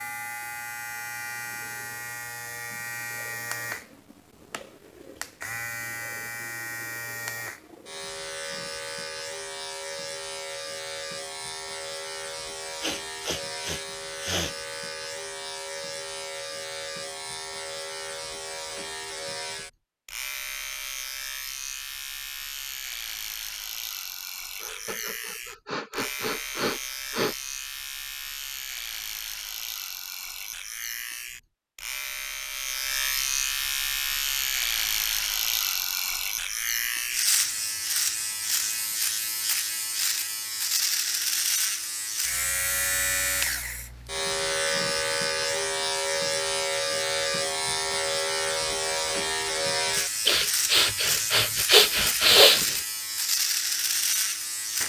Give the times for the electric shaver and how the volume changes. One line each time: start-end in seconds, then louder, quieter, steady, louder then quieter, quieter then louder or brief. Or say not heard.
0.0-54.8 louder.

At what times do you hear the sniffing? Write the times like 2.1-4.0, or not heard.
12.8-14.6, 24.6-27.4, 50.2-52.8.